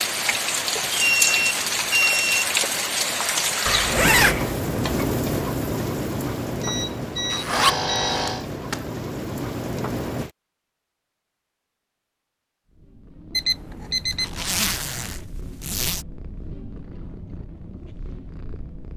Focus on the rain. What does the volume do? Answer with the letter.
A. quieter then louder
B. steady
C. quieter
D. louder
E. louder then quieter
C.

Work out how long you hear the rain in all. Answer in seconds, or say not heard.
10 s.